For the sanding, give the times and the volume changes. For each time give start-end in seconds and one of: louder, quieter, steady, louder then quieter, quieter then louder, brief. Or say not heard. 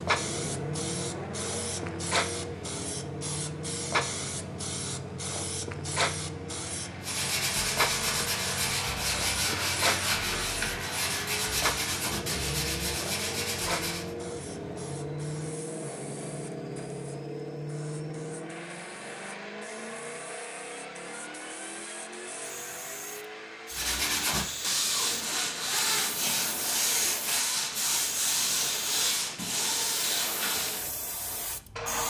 7.0-14.2 steady
23.7-30.9 steady.